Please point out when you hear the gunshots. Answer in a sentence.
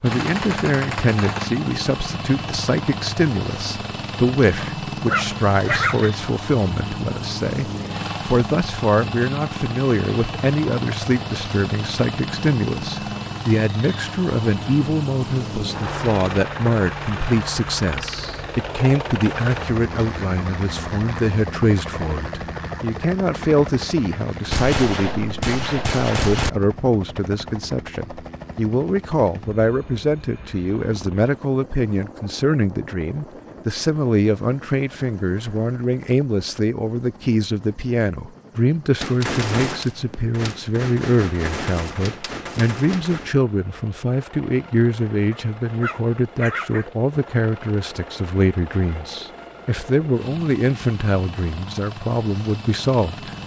The gunshots can be heard from 0.1 to 1.6 s, from 24.5 to 26.5 s and from 39.0 to 43.3 s.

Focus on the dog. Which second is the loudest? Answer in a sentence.
The volume of the dog peaks at 6 seconds.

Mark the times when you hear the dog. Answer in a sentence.
The dog can be heard from 4.6 to 6.1 s and from 45.3 to 46.9 s.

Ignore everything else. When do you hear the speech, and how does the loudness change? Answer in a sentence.
The speech can be heard from 0.0 to 53.3 s, at a steady volume.